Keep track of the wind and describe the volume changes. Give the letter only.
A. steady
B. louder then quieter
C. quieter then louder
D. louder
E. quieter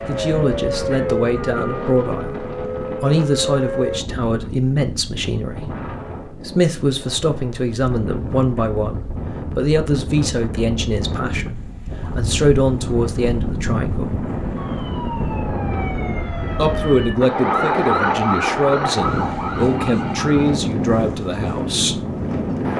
D.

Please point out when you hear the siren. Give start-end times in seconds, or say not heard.
0.0-4.0, 14.6-20.6.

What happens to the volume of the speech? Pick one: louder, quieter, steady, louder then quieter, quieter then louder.
steady.